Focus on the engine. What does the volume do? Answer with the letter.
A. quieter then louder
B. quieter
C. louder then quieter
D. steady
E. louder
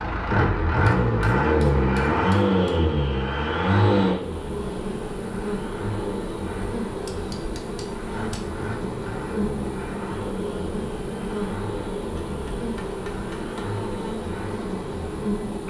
B.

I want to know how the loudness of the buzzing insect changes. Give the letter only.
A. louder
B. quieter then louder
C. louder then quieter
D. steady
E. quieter
D.